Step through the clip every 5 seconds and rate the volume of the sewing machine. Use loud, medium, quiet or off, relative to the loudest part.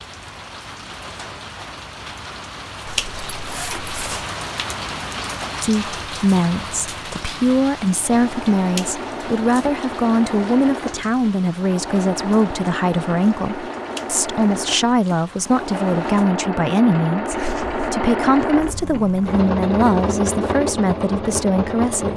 off, medium, medium, loud, loud.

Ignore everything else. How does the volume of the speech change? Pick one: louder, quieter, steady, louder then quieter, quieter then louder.
steady.